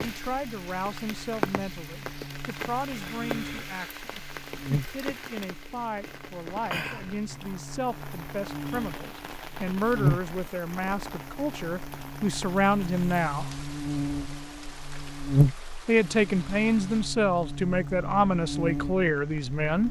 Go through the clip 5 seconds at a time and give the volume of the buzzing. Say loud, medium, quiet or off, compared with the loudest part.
medium, quiet, loud, loud.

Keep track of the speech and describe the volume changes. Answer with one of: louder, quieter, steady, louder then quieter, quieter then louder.
louder.